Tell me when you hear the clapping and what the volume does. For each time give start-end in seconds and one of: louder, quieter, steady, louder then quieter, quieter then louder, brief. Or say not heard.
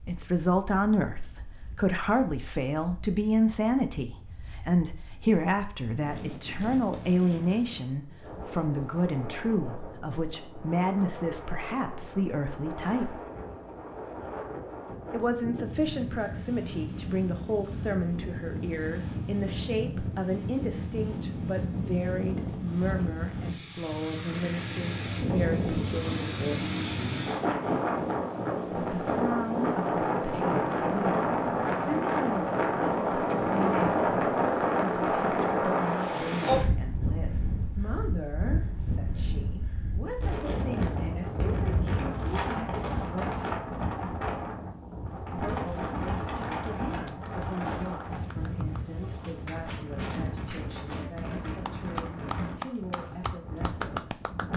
47.0-54.5 louder.